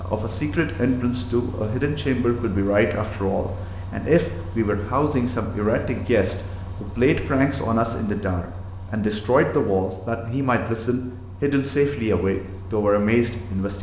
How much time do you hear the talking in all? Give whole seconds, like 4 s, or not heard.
14 s.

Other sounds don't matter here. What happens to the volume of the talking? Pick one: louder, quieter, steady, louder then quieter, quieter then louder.
steady.